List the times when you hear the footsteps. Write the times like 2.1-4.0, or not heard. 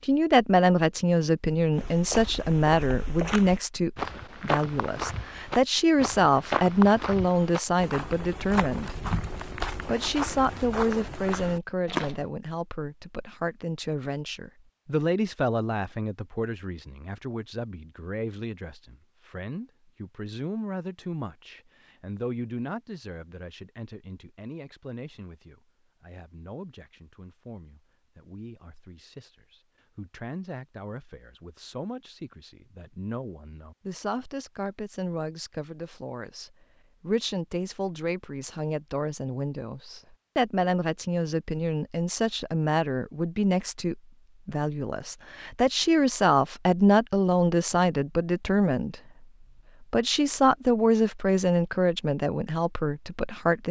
1.7-12.2.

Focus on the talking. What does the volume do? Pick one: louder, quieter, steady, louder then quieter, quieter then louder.
quieter then louder.